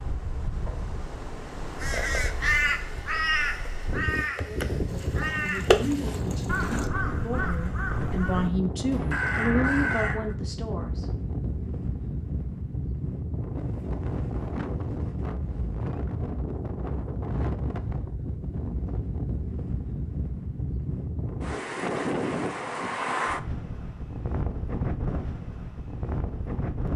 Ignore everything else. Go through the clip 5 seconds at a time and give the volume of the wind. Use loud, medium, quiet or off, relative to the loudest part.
medium, loud, loud, loud, loud, loud.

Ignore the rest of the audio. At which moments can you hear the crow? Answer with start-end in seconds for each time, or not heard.
1.8-10.3.